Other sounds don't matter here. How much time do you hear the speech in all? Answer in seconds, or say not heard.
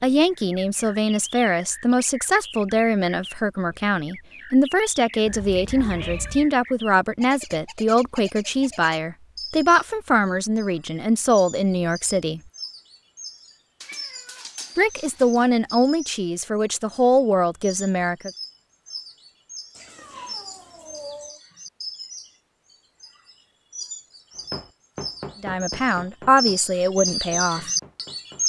18 s.